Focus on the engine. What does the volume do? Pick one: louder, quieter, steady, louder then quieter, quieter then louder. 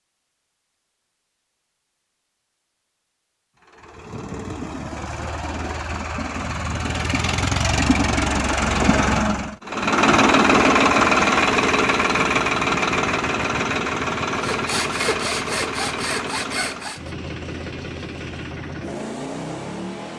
louder then quieter.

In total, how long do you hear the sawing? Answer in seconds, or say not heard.
3 s.